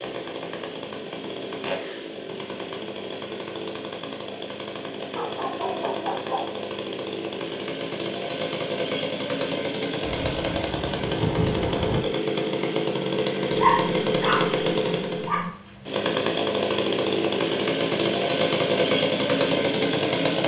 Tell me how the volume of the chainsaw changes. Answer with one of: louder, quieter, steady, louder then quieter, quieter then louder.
louder.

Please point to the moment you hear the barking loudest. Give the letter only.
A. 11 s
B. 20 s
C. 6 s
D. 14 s
D.